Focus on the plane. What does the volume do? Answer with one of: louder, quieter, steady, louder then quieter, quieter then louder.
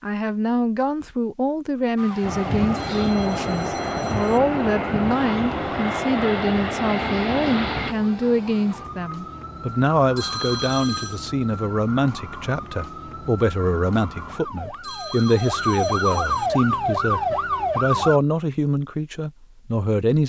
steady.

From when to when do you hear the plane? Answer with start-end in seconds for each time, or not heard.
2.2-8.0.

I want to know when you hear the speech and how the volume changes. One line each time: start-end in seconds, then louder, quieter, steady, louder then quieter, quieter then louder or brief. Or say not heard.
0.0-20.2 steady.